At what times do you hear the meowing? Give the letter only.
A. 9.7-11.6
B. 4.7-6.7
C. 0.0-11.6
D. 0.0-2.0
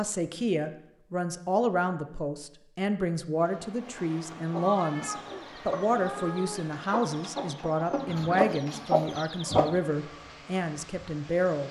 B.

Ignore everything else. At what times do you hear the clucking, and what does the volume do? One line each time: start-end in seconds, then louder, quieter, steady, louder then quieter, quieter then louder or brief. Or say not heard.
4.3-9.7 louder.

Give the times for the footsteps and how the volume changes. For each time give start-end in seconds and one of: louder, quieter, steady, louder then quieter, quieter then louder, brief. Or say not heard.
not heard.